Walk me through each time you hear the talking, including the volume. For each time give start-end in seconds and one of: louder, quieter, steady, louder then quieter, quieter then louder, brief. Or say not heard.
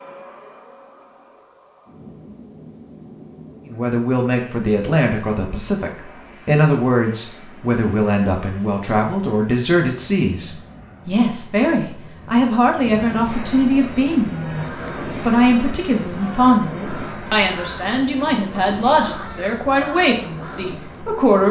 3.6-21.4 steady.